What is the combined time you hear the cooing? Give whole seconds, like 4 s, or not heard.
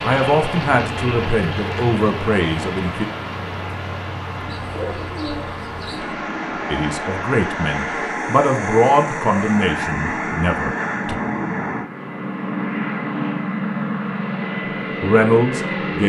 2 s.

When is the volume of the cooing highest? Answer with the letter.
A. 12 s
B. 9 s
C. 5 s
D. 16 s
C.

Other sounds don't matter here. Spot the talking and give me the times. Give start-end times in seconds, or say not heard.
0.0-3.0, 6.7-11.2, 15.0-16.0.